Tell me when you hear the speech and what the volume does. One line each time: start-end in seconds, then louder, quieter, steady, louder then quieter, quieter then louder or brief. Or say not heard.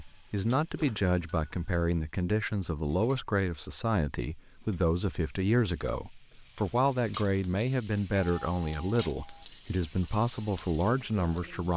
0.0-11.7 steady.